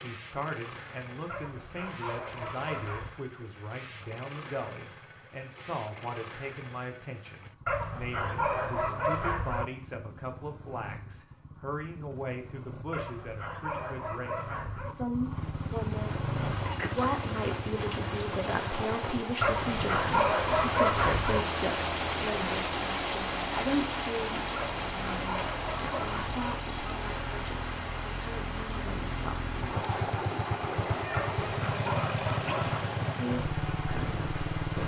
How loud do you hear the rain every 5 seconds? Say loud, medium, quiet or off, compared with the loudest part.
off, off, off, medium, loud, medium, medium.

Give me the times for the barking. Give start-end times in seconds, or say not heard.
1.2-3.2, 7.7-9.7, 12.9-14.9, 19.4-21.4, 24.6-26.4, 31.1-32.8.